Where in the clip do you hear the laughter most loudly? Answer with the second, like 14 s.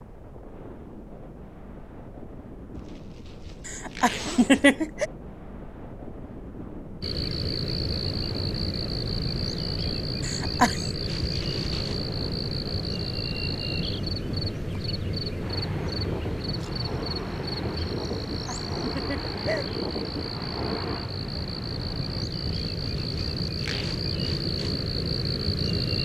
5 s.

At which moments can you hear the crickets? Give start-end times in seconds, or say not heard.
7.0-26.0.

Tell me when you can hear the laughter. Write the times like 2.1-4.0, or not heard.
3.6-5.0, 10.2-10.8, 18.3-19.6.